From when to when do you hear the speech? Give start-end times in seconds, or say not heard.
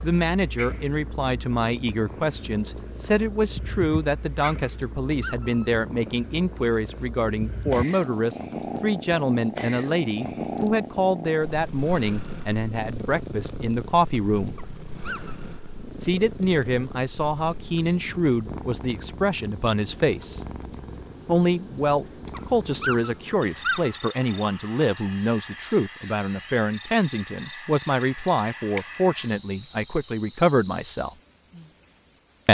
0.0-14.6, 16.0-20.4, 21.2-31.1.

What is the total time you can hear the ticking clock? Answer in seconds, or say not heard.
not heard.